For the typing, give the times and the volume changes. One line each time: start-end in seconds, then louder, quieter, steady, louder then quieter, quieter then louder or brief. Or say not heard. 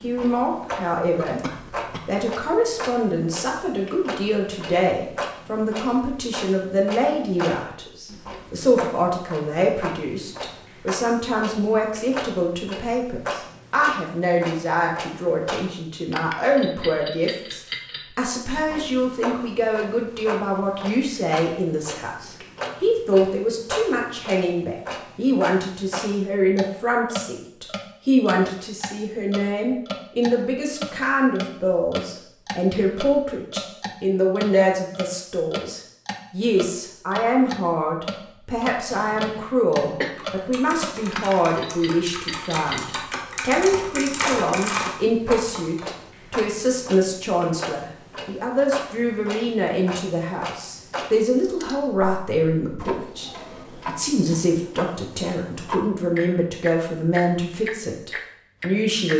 40.0-45.9 louder.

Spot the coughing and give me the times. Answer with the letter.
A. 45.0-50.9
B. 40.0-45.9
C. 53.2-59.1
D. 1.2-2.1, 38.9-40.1
D.